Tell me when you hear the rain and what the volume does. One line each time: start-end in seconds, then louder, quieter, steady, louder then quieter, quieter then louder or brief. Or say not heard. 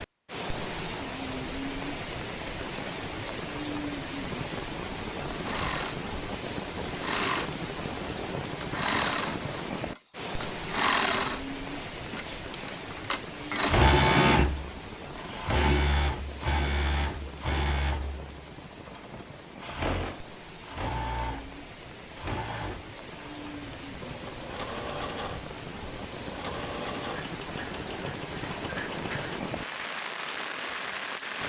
0.0-31.4 quieter then louder.